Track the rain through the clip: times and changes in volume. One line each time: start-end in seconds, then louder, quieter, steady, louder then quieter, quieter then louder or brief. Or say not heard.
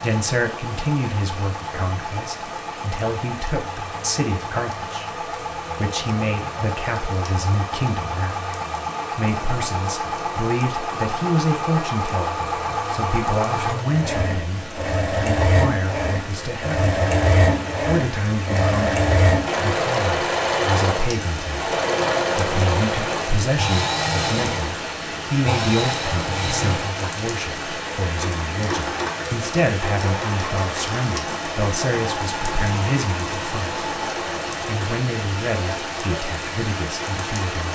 0.0-37.6 louder.